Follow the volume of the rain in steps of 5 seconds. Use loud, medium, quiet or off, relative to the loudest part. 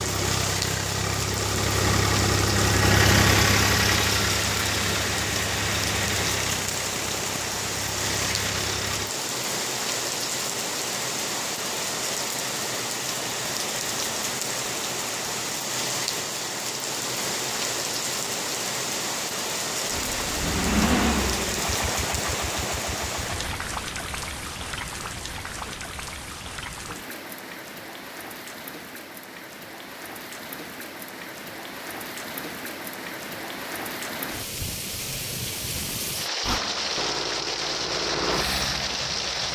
loud, loud, loud, loud, loud, medium, medium, loud.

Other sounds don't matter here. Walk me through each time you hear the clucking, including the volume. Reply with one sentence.
You can't hear the clucking here.